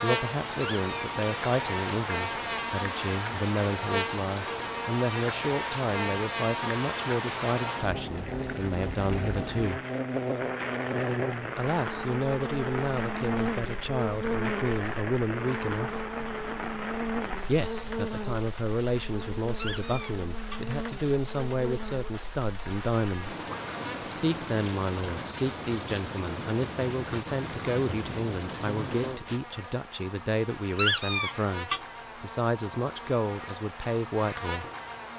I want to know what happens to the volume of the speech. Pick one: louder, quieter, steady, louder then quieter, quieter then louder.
steady.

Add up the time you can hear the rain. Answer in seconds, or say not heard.
29 s.